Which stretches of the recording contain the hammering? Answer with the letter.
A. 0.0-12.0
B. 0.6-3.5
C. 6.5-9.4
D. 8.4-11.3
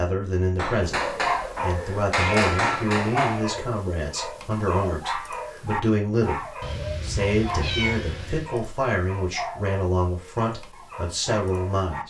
B.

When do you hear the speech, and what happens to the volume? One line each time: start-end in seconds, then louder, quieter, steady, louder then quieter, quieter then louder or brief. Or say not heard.
0.0-12.0 steady.